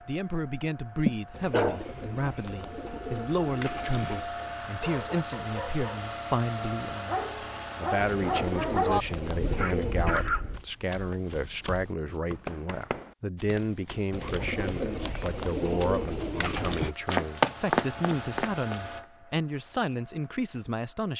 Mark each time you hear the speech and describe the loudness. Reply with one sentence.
You can hear the speech from 0.1 to 21.1 s, at a steady volume.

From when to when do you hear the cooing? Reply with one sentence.
You can hear the cooing from 1.3 to 4.3 s, from 8.0 to 10.3 s and from 14.1 to 16.9 s.